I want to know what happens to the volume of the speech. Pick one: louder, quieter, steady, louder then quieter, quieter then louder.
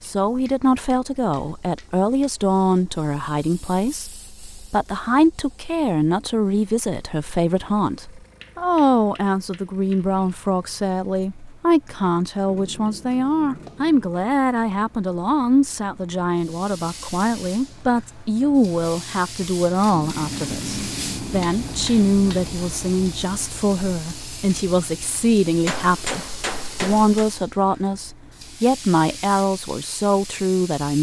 steady.